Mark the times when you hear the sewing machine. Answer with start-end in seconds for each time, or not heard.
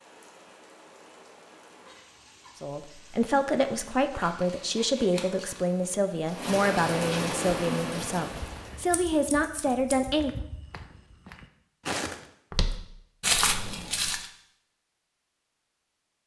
not heard.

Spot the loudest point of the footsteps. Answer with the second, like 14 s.
13 s.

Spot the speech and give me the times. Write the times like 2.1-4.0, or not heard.
2.6-10.3.